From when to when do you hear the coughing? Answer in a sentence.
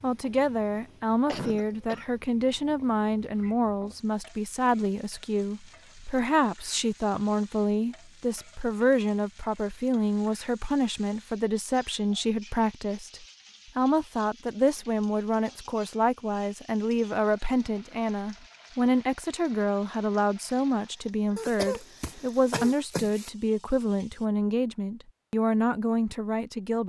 The coughing can be heard from 1.2 to 2.0 s and from 21.4 to 23.3 s.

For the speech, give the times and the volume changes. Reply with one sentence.
You can hear the speech from 0.0 to 26.8 s, at a steady volume.